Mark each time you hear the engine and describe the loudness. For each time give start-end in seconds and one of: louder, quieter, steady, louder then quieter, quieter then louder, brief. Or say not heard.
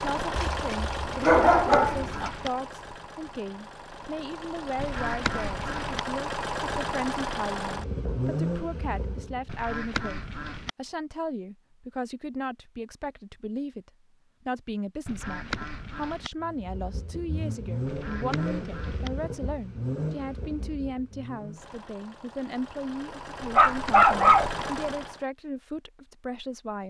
0.0-9.6 quieter then louder
16.4-25.2 quieter then louder.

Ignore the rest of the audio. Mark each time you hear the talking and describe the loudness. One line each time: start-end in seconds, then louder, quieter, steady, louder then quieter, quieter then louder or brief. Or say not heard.
0.0-26.8 steady.